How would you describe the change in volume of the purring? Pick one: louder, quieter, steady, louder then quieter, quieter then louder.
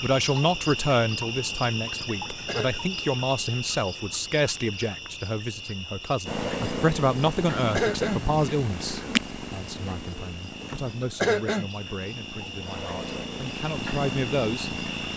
quieter then louder.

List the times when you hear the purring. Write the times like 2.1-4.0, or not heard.
6.2-15.1.